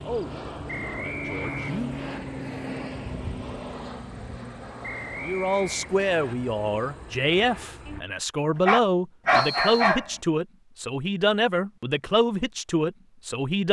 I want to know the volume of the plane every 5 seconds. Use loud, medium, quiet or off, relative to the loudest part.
loud, medium, off.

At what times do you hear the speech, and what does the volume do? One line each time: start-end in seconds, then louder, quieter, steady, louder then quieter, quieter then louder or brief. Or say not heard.
0.0-1.9 brief
5.2-13.6 steady.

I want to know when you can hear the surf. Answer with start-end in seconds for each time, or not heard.
not heard.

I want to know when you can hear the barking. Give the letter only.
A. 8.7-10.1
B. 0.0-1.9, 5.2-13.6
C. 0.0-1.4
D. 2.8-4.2
A.